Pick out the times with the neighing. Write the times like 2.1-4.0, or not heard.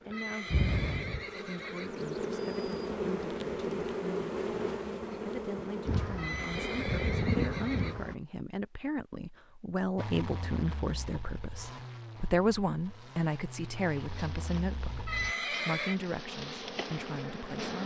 0.1-2.0, 6.2-8.1, 15.1-16.0.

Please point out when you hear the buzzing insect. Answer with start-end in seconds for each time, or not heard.
0.1-8.2, 13.8-17.8.